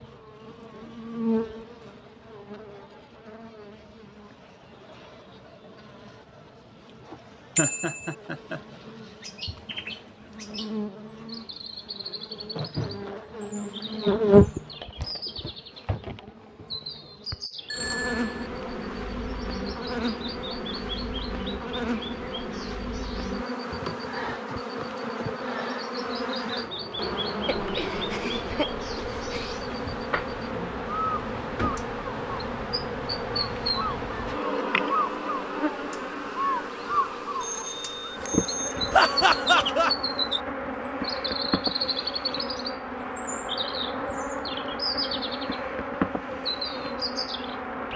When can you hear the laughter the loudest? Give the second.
39 s.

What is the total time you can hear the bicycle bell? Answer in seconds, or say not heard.
3 s.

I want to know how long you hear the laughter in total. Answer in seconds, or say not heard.
4 s.